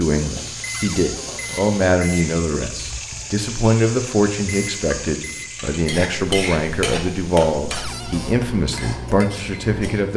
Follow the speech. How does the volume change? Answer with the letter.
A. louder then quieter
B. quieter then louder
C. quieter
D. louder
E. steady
E.